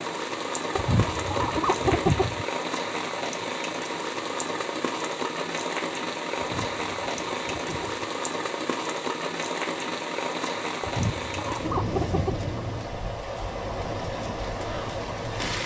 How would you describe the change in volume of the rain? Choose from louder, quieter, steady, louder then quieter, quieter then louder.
steady.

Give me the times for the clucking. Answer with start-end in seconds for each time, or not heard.
0.8-2.5, 6.3-8.1, 10.8-12.8.